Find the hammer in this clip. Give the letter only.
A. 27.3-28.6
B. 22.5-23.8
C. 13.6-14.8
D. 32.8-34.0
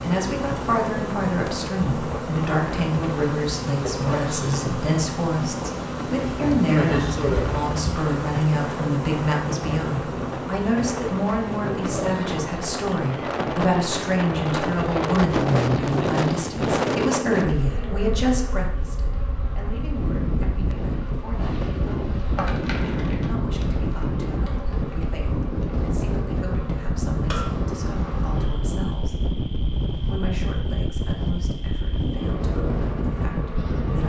A.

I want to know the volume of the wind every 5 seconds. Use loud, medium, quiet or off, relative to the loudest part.
medium, medium, loud, loud, loud, loud, loud.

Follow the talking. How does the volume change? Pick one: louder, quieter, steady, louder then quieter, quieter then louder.
quieter.